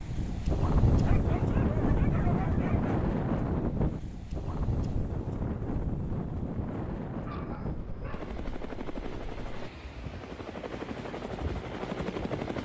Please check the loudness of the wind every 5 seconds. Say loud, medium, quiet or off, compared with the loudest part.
loud, medium, quiet.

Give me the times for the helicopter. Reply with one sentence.
The helicopter can be heard from 8.1 to 12.6 s.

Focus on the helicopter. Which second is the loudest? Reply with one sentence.
The loudest moment of the helicopter is at 12 seconds.